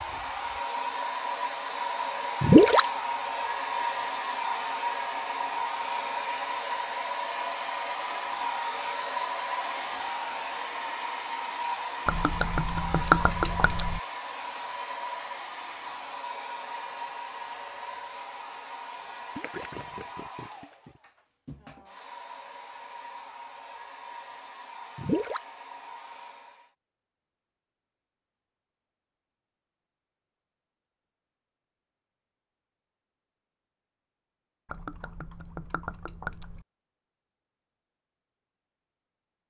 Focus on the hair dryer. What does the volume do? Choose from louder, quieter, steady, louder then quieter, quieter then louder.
quieter.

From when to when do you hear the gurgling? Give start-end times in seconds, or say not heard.
2.4-3.0, 12.1-14.0, 19.4-20.9, 24.9-25.6, 34.6-36.6.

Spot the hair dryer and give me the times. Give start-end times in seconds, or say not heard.
0.0-26.7.